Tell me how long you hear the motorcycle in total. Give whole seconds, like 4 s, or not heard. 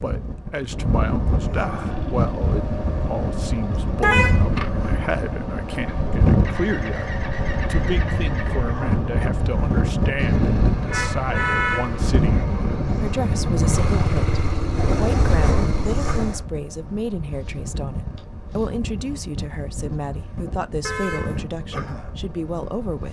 15 s.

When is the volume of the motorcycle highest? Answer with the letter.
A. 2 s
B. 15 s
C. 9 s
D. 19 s
B.